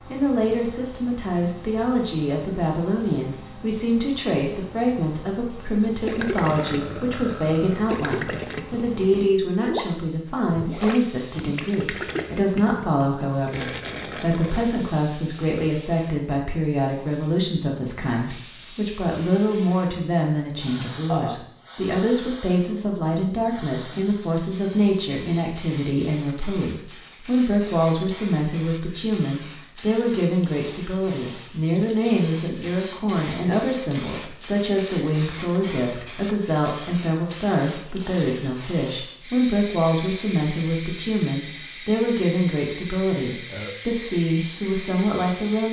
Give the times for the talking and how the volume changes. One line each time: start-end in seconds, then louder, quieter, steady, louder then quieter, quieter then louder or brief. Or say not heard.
0.1-45.6 steady.